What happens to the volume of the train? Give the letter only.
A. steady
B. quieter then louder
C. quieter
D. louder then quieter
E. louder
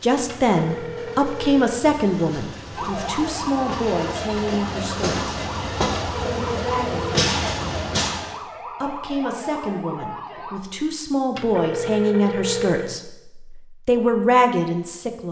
E.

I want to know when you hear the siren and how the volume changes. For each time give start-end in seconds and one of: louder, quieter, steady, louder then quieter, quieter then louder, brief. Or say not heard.
2.8-10.6 steady.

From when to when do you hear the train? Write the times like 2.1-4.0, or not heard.
0.0-8.4.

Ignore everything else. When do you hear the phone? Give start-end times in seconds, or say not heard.
0.2-1.9, 6.0-7.2, 11.3-13.0.